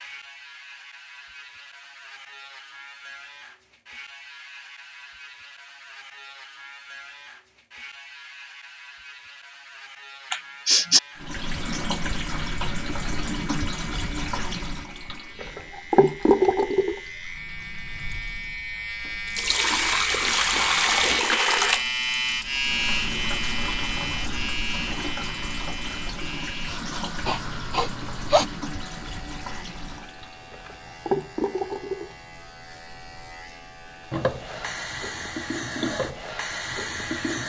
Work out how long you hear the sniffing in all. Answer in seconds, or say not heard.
2 s.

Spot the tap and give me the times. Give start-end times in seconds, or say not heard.
11.2-37.4.